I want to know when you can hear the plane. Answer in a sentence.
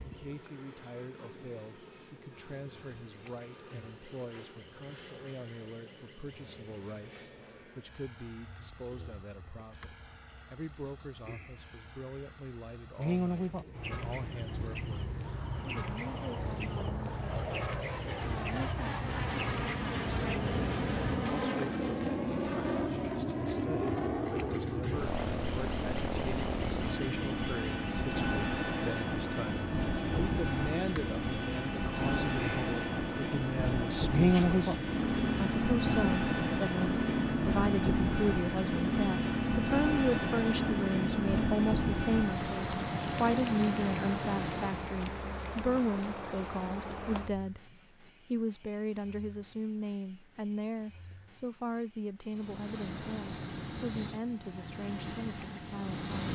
The plane can be heard from 0.0 to 45.0 s and from 52.2 to 56.3 s.